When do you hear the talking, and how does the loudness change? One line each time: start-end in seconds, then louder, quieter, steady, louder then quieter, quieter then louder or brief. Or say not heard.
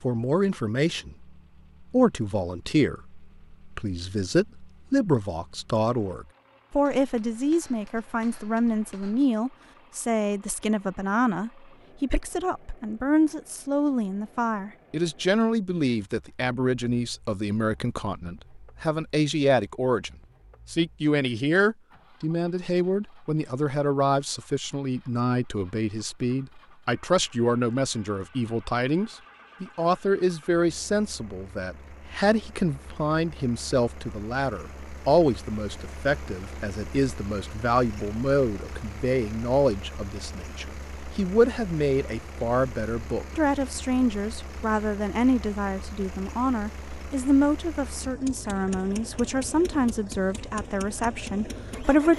0.0-52.1 steady.